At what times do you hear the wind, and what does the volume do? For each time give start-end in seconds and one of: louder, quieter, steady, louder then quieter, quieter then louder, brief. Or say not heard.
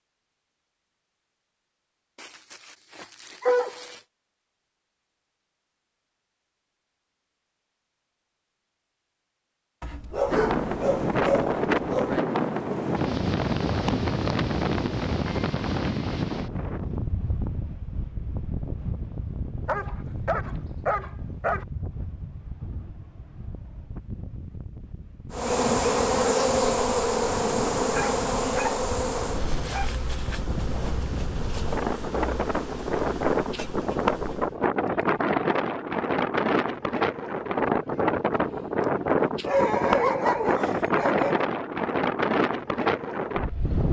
10.3-43.8 quieter then louder.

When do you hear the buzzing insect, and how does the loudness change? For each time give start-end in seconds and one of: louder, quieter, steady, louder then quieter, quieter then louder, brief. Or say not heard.
25.3-34.6 quieter.